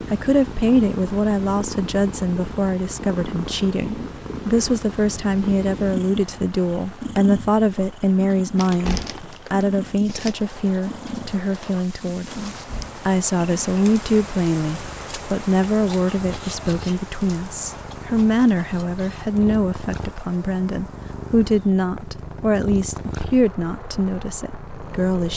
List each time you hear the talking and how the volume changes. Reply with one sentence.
The talking can be heard from 0.1 to 25.3 s, at a steady volume.